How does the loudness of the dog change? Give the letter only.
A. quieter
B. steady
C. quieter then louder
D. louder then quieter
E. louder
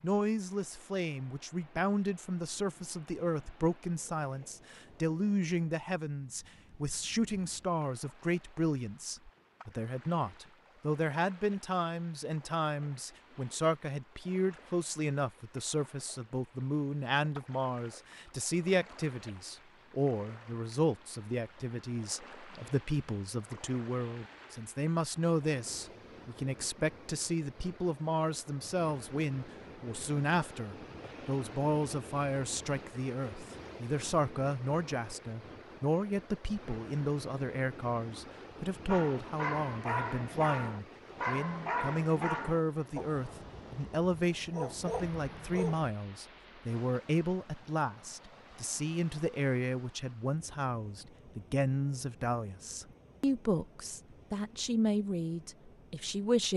C.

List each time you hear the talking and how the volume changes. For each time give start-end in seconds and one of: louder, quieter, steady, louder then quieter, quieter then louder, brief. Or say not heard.
0.0-56.5 steady.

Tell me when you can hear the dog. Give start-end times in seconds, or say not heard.
38.9-45.9.